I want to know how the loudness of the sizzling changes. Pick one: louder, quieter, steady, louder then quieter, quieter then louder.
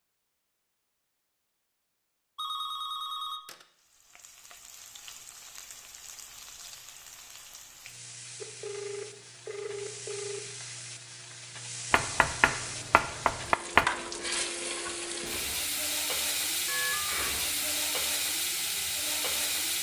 louder.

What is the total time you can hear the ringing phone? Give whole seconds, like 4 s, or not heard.
4 s.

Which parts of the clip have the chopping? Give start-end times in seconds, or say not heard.
11.9-13.8.